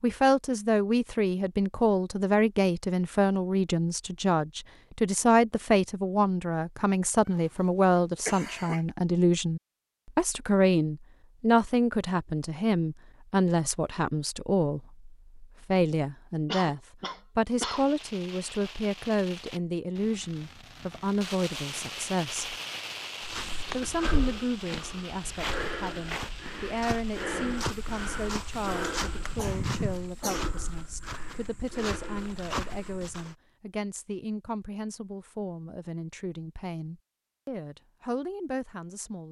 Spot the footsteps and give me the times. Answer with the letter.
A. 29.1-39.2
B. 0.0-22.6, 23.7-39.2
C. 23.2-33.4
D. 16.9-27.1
C.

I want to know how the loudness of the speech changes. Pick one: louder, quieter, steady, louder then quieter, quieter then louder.
quieter.